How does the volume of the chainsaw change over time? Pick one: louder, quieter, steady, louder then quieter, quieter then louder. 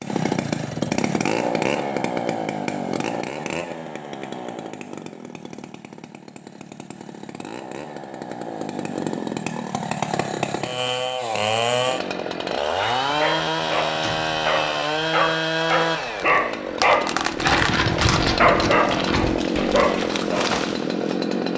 quieter then louder.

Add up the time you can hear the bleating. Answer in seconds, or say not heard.
not heard.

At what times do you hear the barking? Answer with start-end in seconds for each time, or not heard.
12.8-20.6.